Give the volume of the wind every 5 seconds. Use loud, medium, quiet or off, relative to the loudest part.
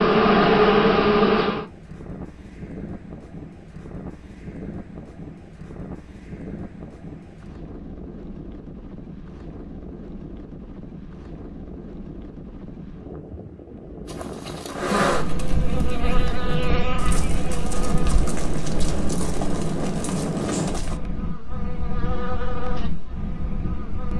medium, medium, medium, loud, loud.